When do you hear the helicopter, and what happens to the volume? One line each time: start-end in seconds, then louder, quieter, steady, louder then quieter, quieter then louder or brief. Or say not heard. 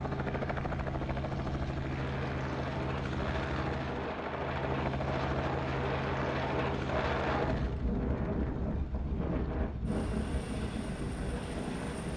0.0-12.1 quieter.